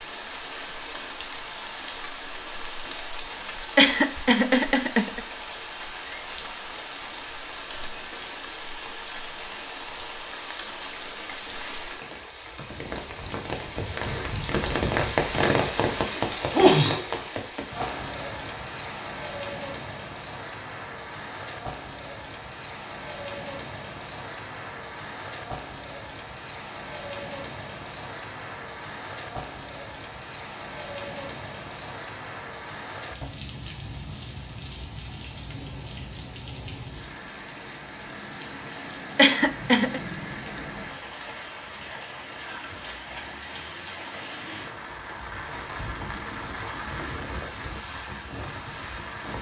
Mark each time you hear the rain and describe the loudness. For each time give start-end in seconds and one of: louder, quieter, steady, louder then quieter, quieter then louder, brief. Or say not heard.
0.0-49.3 louder then quieter.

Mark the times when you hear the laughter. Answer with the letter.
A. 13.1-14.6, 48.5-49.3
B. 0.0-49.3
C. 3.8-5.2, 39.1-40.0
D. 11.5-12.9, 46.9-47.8
C.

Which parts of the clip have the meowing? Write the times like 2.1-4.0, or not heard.
not heard.